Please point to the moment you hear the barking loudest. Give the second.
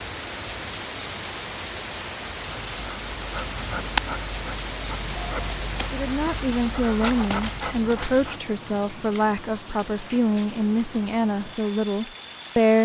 4 s.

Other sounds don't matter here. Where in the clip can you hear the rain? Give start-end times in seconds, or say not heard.
0.0-12.7.